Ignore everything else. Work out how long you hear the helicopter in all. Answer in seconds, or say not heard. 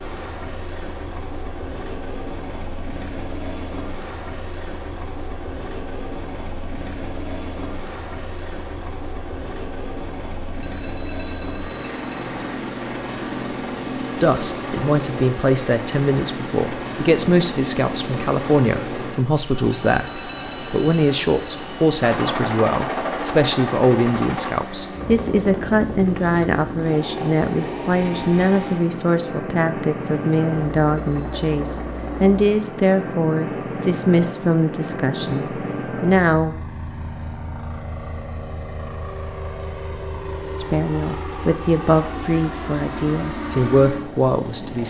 45 s.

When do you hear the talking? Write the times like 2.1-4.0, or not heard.
14.2-36.5, 40.6-44.8.